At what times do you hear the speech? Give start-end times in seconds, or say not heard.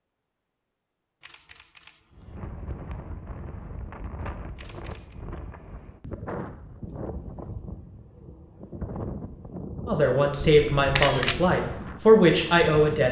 9.8-13.0.